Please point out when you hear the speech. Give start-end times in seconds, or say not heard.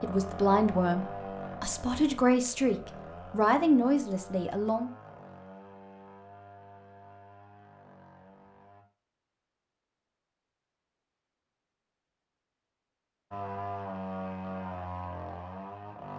0.0-4.9.